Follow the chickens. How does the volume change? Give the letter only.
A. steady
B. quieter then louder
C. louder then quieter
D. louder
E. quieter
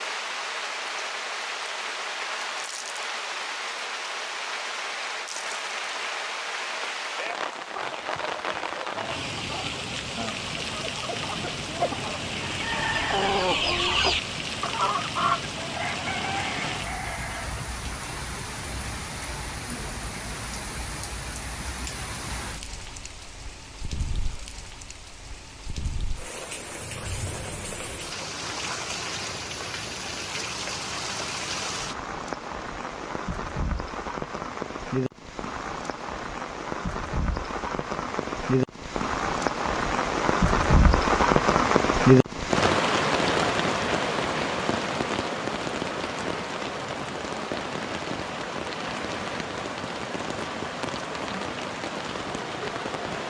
C.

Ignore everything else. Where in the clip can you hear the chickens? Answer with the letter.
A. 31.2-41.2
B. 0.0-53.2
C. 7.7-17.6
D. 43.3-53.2
C.